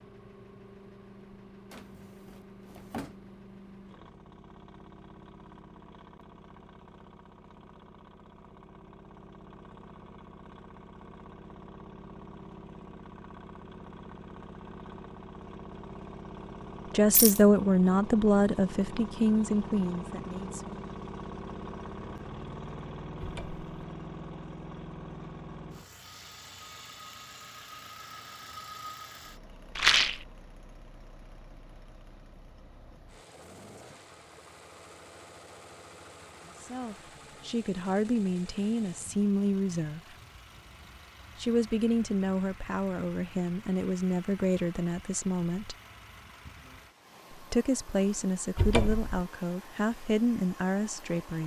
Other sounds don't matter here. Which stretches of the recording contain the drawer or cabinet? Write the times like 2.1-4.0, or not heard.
1.7-3.4, 23.1-23.6, 48.5-49.2.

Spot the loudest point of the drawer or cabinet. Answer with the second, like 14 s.
49 s.